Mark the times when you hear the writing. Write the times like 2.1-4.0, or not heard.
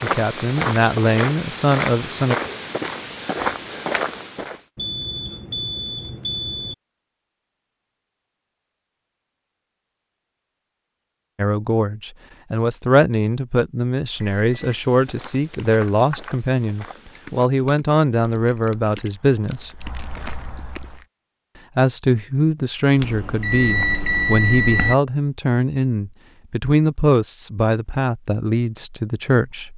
not heard.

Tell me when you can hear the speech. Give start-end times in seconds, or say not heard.
0.0-2.4, 11.3-19.9, 21.8-29.7.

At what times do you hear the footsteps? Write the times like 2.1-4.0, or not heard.
0.0-4.6, 14.1-21.1.